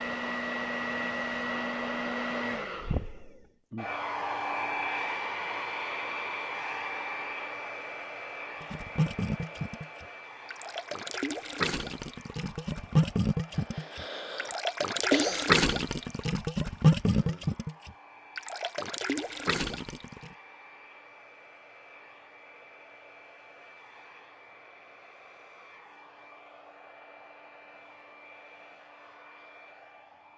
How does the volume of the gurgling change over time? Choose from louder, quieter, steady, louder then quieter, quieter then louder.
louder then quieter.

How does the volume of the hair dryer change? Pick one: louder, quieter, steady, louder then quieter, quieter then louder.
quieter.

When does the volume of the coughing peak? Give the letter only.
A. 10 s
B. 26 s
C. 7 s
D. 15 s
D.